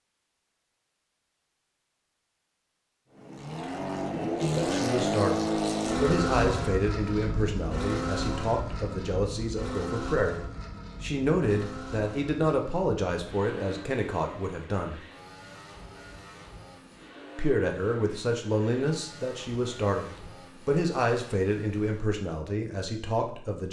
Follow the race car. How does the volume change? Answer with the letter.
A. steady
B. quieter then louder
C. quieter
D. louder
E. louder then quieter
C.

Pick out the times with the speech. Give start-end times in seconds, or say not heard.
4.5-15.0, 17.4-23.6.